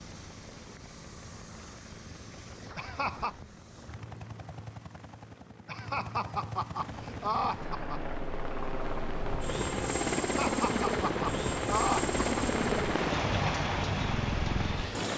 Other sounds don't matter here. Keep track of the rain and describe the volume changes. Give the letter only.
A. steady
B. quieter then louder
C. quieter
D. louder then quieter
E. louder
E.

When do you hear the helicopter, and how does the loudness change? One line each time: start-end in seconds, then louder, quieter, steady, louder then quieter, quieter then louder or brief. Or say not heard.
0.0-15.1 louder.